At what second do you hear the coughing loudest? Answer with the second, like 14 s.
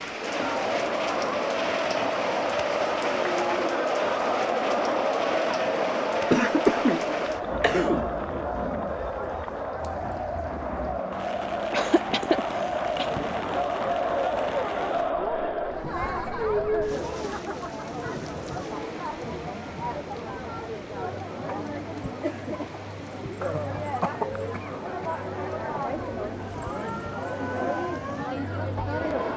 7 s.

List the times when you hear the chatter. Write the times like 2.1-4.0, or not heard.
0.0-29.3.